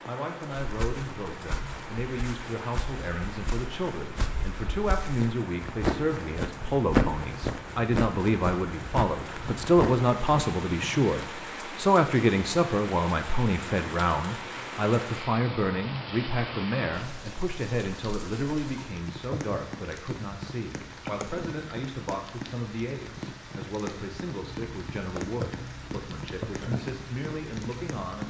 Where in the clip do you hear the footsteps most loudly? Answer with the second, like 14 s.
7 s.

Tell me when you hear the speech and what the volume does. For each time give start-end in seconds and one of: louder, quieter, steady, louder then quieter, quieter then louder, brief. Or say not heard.
0.1-28.2 louder then quieter.